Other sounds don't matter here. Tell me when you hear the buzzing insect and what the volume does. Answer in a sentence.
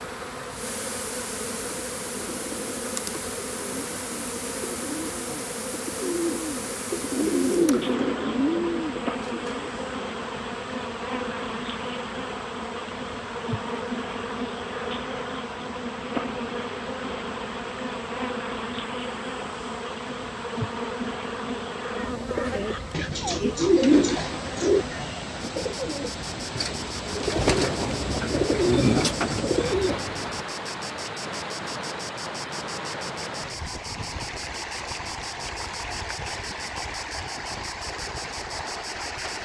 You can hear the buzzing insect from 0.0 to 39.4 s, getting quieter.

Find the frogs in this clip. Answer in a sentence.
You can't hear the frogs here.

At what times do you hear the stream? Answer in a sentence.
You can hear the stream from 0.0 to 39.4 s.